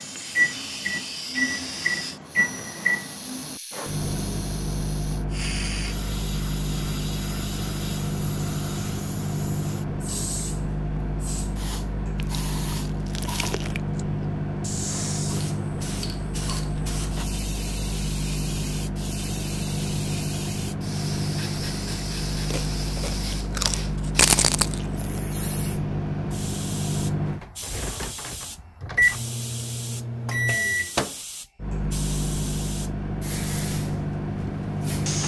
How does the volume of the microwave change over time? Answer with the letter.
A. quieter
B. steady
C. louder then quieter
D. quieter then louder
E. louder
B.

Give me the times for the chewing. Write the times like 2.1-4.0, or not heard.
12.2-13.8, 22.4-25.2.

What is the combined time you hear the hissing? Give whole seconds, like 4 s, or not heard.
35 s.